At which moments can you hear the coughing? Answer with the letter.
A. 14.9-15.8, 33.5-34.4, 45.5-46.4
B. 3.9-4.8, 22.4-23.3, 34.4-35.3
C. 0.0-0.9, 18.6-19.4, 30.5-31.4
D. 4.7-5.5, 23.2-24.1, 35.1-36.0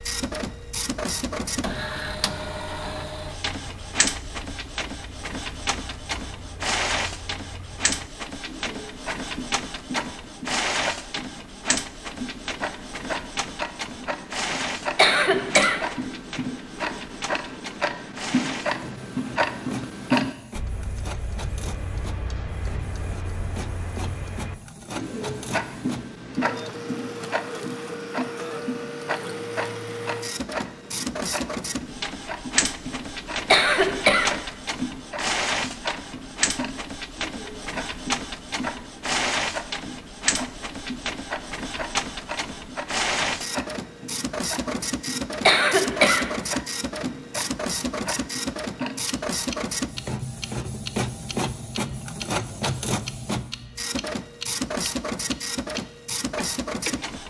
A.